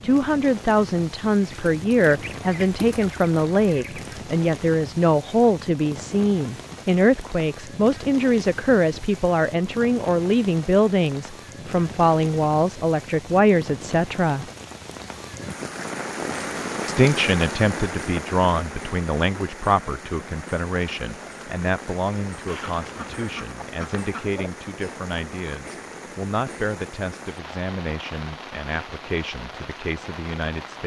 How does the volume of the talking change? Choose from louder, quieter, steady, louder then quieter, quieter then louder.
quieter.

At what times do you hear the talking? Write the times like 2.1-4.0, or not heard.
0.0-14.4, 16.9-30.8.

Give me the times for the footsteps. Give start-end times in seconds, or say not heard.
not heard.